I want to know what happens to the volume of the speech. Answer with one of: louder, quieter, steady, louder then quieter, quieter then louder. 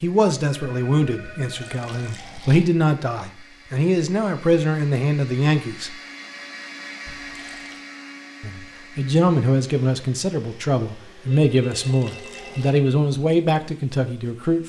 steady.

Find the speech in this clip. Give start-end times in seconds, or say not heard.
0.0-6.0, 8.4-14.6.